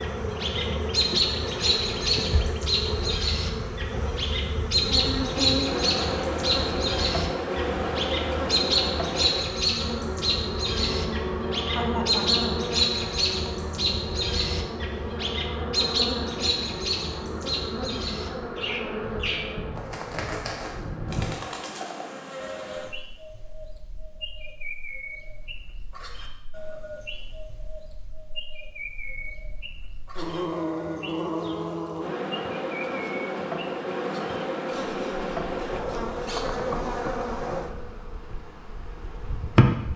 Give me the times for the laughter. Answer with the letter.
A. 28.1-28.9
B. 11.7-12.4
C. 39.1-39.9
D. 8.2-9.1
B.